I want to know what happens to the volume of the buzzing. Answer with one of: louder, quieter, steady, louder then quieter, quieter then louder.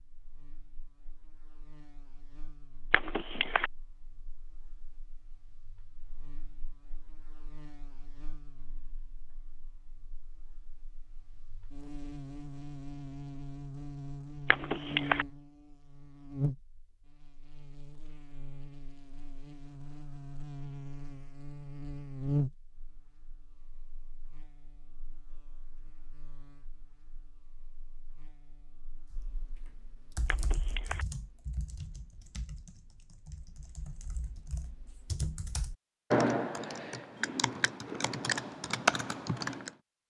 louder then quieter.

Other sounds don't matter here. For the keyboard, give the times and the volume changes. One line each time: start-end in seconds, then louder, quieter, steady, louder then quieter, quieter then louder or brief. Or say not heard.
29.1-39.7 louder.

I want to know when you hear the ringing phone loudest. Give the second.
15 s.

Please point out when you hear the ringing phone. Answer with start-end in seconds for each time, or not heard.
2.9-3.7, 14.4-15.2, 30.2-31.1.